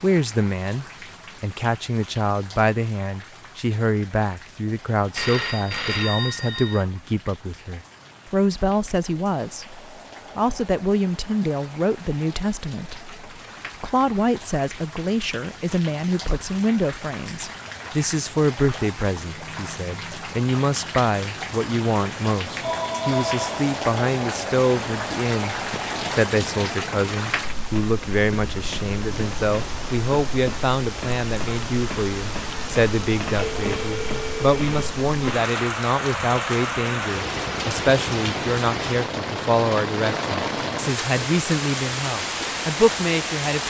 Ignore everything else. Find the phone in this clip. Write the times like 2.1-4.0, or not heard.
5.2-6.8, 22.6-23.6, 33.4-34.9.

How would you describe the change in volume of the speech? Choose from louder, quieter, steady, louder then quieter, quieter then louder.
steady.